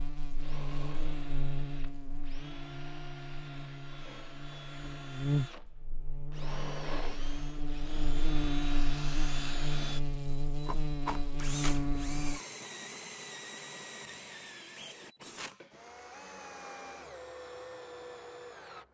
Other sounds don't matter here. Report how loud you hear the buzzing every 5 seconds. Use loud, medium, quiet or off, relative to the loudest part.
medium, loud, loud, off.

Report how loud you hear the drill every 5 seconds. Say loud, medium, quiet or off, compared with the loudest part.
medium, loud, loud, loud.